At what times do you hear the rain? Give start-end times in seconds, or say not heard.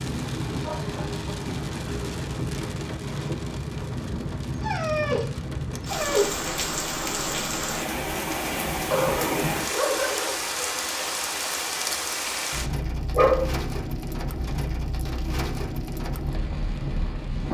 0.0-17.4.